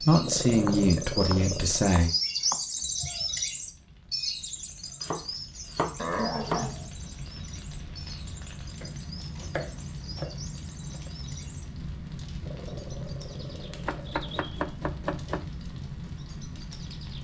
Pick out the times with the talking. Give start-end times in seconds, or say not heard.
0.0-2.1.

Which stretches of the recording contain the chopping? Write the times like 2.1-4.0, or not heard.
0.6-2.6, 5.0-6.7, 8.8-11.1, 13.8-15.4.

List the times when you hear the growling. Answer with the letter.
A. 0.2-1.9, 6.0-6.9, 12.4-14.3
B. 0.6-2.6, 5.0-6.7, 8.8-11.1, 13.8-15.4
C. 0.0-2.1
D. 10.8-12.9
A.